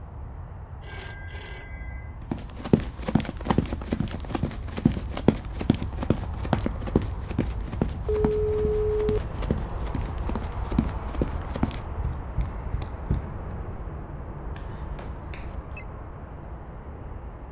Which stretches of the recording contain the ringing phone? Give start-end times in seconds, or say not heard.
0.8-2.1, 8.1-9.2, 14.6-15.8.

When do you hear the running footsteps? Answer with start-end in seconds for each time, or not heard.
2.3-13.6.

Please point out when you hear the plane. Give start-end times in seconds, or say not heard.
0.0-17.4.